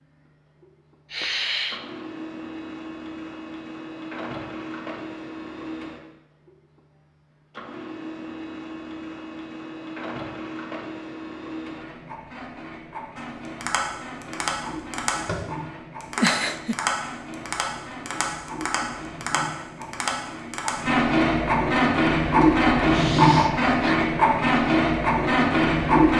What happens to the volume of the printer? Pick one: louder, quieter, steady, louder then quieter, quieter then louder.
louder.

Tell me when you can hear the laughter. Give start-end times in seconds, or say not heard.
16.1-16.8.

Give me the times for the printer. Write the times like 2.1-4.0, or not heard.
0.0-26.1.